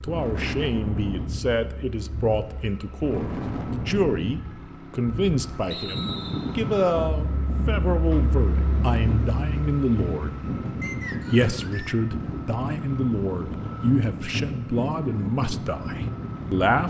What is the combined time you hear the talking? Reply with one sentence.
You can hear the talking for 16 seconds altogether.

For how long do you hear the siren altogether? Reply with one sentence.
The siren can't be heard in this clip.